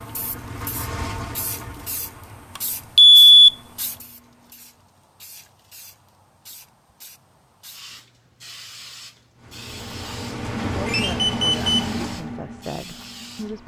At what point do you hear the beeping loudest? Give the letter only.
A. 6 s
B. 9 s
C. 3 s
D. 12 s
C.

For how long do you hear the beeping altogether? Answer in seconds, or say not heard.
2 s.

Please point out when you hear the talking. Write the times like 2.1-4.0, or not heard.
10.7-13.6.